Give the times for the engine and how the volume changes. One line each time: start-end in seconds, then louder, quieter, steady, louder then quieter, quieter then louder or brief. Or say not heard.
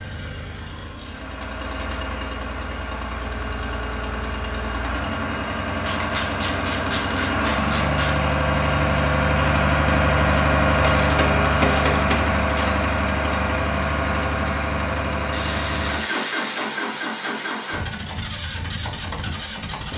0.0-19.9 louder then quieter.